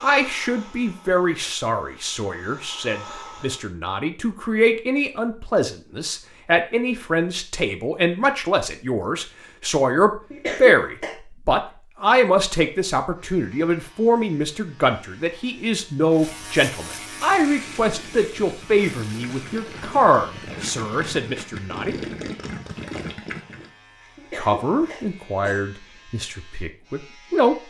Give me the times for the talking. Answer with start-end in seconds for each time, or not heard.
0.0-21.9, 24.4-27.6.